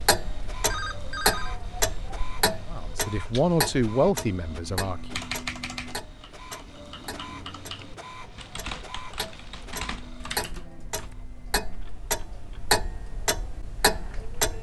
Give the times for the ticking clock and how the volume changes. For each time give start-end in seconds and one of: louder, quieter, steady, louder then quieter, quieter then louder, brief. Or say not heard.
0.0-14.5 quieter then louder.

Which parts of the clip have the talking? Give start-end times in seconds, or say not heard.
2.7-5.2.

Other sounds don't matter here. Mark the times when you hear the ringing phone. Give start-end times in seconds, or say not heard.
0.7-1.6.